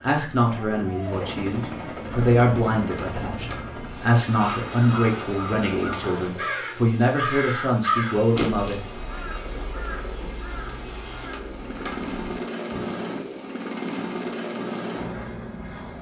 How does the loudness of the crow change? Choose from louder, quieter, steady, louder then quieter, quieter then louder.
louder then quieter.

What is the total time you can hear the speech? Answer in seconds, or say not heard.
9 s.